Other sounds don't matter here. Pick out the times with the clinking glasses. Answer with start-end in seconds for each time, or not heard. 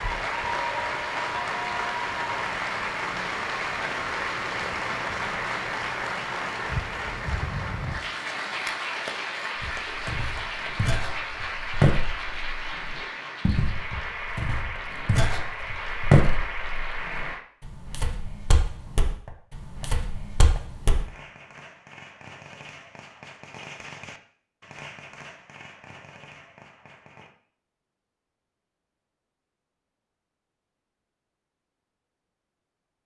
not heard.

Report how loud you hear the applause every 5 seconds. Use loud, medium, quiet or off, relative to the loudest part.
loud, loud, medium, medium, off, off, off.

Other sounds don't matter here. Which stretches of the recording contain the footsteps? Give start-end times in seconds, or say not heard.
9.6-21.1.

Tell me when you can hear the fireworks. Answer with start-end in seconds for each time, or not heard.
18.8-27.4.